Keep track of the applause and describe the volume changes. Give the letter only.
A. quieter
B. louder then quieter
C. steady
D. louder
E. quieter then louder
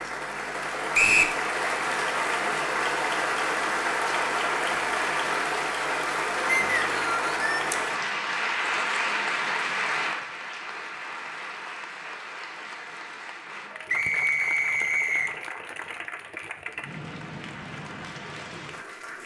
A.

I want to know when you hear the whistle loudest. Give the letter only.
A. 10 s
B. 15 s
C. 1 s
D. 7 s
C.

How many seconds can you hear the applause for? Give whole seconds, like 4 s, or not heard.
19 s.